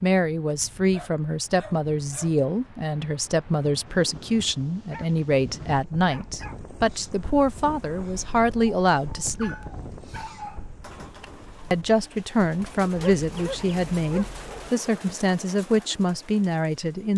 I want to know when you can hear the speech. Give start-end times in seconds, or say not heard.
0.0-9.7, 11.7-17.1.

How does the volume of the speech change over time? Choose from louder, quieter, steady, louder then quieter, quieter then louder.
steady.